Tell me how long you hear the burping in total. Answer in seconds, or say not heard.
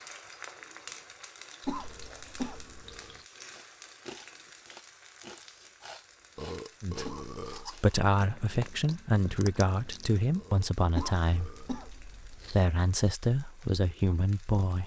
4 s.